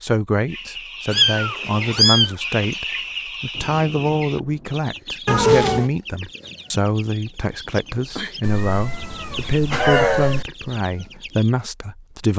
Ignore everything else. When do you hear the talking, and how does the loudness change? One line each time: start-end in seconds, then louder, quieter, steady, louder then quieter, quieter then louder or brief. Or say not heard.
0.0-12.3 steady.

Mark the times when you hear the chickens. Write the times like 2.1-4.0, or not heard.
0.5-11.6.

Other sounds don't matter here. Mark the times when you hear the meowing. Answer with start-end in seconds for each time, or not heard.
1.1-2.4, 5.2-5.9, 8.4-10.4.